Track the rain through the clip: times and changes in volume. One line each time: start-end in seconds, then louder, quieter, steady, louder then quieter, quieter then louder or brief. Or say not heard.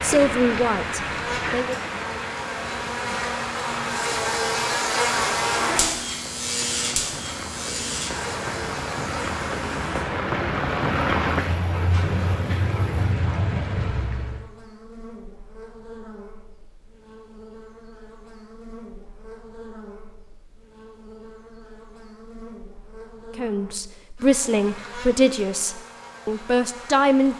0.0-14.4 quieter then louder.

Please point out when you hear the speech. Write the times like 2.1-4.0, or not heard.
0.0-1.8, 23.4-27.3.